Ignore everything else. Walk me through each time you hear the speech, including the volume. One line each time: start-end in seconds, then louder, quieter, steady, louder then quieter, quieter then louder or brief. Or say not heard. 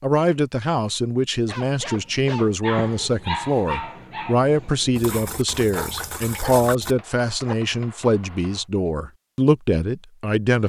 0.0-10.6 steady.